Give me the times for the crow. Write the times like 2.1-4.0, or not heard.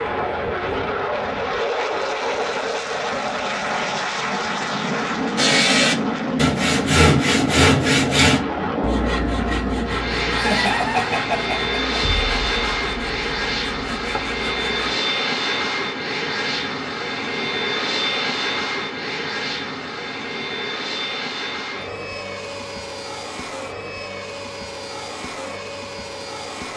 not heard.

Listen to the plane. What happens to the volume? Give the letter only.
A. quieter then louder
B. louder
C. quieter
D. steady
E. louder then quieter
C.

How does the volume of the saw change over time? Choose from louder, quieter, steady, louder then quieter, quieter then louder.
quieter.